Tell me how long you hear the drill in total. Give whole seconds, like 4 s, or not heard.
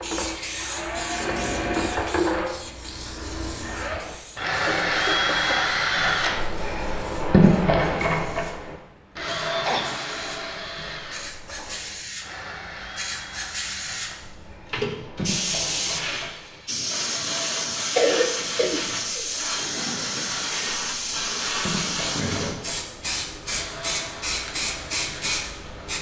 26 s.